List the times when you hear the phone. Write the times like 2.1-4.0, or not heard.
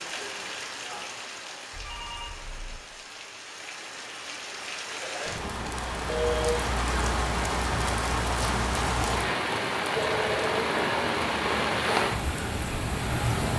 1.7-2.8, 5.2-6.7, 9.9-11.9.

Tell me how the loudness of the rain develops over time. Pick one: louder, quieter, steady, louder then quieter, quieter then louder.
louder.